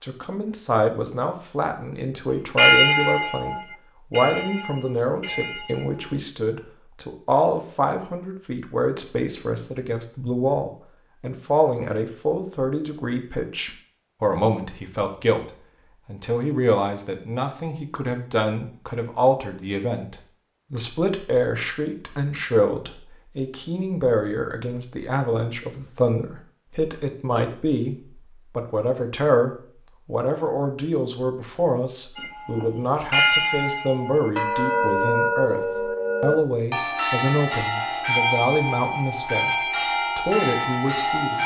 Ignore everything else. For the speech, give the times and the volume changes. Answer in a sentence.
You can hear the speech from 0.0 to 41.4 s, at a steady volume.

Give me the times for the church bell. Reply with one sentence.
The church bell can be heard from 2.5 to 6.2 s and from 32.1 to 41.4 s.